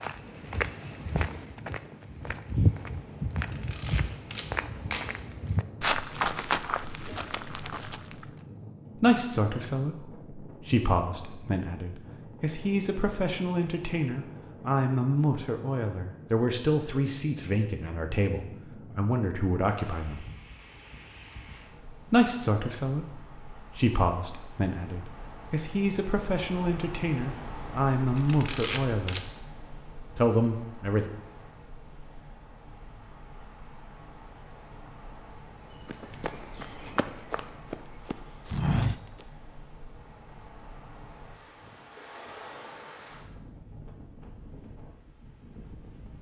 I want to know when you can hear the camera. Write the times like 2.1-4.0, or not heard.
3.4-5.1, 28.1-29.2.